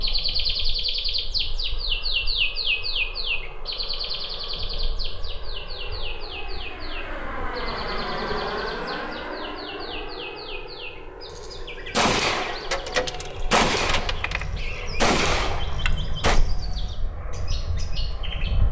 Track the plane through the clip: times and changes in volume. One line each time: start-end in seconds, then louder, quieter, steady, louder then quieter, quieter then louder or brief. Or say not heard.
0.0-18.6 louder then quieter.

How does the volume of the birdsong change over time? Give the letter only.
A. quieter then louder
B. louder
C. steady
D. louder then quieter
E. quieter
E.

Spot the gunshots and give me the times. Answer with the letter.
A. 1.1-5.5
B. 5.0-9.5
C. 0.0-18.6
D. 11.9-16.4
D.